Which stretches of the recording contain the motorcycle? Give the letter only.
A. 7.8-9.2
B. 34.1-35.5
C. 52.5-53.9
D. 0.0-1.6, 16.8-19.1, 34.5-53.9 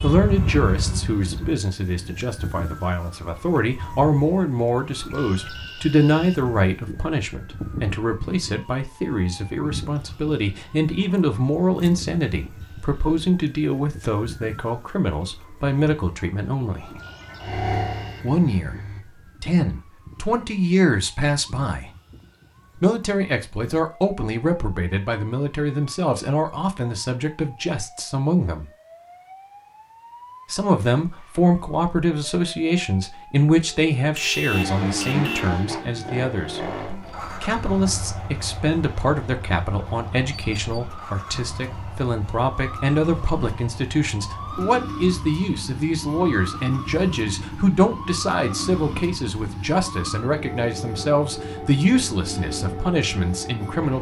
D.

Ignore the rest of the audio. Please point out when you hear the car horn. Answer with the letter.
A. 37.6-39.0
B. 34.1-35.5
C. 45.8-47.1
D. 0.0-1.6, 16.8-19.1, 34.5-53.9
B.